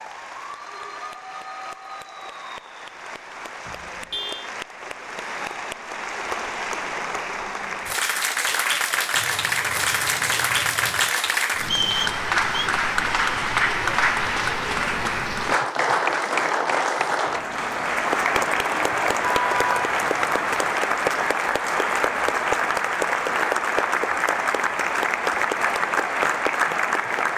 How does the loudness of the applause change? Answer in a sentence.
The volume of the applause goes up.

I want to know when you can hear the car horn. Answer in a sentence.
The car horn can be heard from 3.6 to 4.5 s, from 9.1 to 11.2 s and from 19.2 to 20.8 s.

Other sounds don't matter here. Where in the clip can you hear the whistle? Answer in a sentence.
The whistle can be heard from 11.6 to 12.7 s.